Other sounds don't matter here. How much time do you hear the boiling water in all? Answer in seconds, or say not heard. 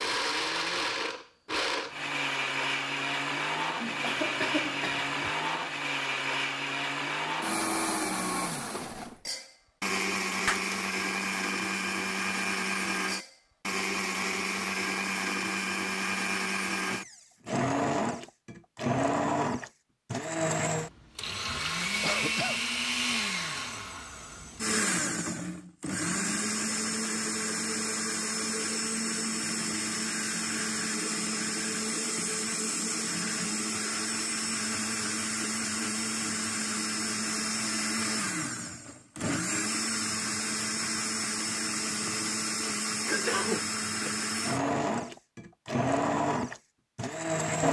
not heard.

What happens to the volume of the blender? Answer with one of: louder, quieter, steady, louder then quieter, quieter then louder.
steady.